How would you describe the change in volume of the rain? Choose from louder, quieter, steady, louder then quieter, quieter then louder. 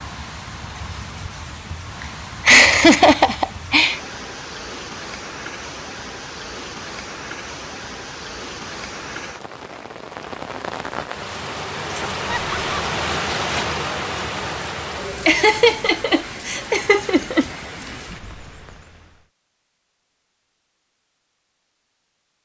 louder then quieter.